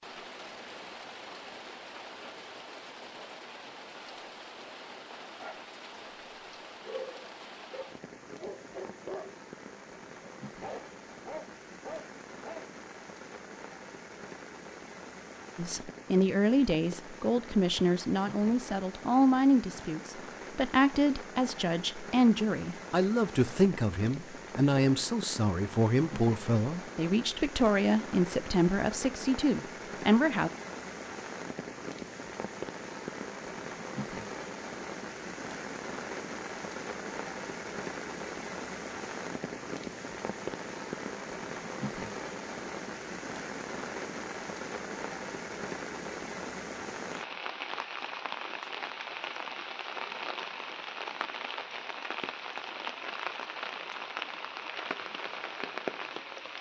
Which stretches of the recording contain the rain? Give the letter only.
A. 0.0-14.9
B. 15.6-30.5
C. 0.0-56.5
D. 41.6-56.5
C.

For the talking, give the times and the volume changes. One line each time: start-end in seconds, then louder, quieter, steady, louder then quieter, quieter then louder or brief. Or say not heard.
15.6-30.5 steady.